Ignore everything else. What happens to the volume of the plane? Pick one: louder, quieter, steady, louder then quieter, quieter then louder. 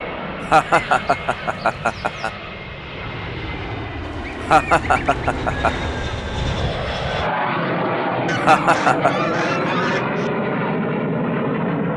louder.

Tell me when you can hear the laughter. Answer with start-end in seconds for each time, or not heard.
0.5-2.3, 4.5-5.9, 8.4-9.1.